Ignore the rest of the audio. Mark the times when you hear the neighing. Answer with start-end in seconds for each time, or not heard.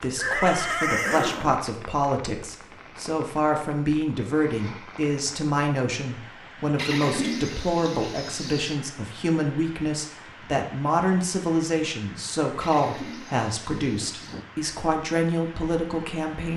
0.1-1.6, 6.8-8.8, 12.6-14.4.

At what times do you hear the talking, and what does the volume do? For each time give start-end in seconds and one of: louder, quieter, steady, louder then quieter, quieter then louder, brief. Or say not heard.
0.0-16.5 steady.